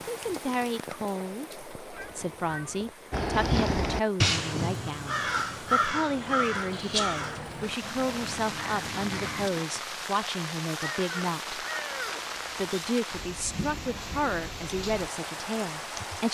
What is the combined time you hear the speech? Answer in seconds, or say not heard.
15 s.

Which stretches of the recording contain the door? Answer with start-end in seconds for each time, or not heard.
not heard.